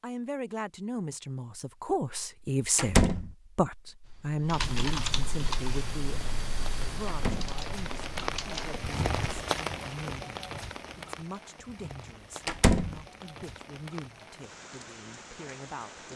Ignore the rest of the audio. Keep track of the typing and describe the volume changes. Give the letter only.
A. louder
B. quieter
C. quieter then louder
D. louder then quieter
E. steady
B.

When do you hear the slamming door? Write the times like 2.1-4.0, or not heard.
2.8-3.3, 7.0-7.6, 12.4-13.0.